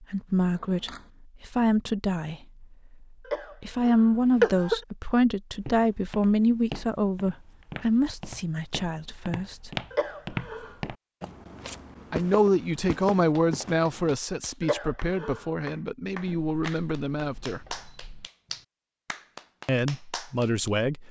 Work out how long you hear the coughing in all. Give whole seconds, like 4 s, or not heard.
3 s.